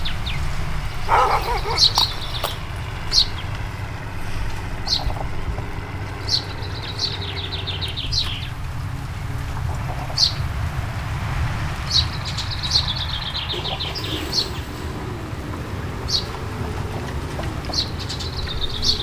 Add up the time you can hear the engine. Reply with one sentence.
The engine can be heard for 19 seconds in total.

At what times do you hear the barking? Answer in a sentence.
You can hear the barking from 1.1 to 2.6 s.